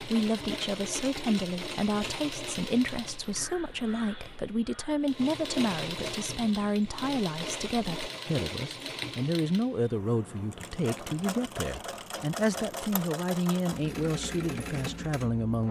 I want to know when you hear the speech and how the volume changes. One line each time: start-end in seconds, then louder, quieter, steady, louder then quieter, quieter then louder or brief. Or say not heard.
0.0-15.6 steady.